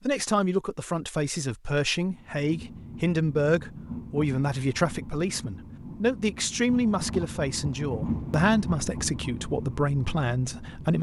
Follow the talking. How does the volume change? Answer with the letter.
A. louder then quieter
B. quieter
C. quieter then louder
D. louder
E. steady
E.